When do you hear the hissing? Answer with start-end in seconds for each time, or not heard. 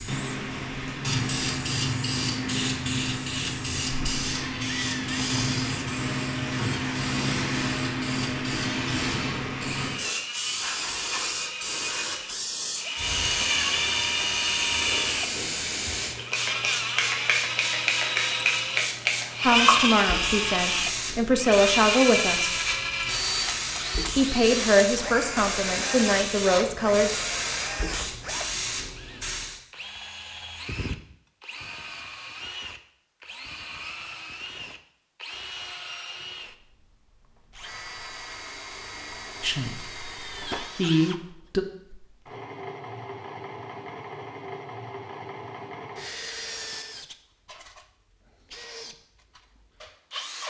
0.0-29.6.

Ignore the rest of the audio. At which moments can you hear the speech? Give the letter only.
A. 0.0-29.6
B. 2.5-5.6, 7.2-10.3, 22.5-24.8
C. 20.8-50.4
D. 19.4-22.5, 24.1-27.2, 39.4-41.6
D.